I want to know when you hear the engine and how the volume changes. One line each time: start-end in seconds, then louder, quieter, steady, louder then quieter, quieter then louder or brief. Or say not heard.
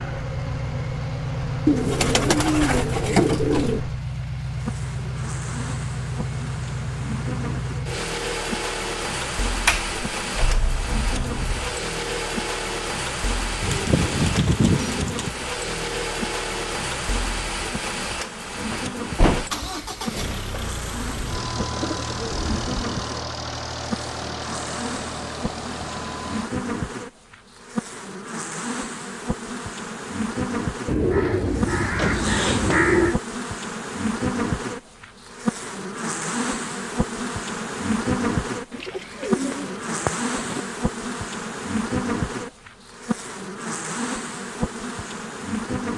0.0-26.5 steady.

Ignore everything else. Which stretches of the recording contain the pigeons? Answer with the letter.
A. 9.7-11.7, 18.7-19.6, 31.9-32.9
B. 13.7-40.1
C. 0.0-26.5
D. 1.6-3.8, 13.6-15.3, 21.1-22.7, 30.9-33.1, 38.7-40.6
D.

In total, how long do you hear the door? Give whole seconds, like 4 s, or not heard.
4 s.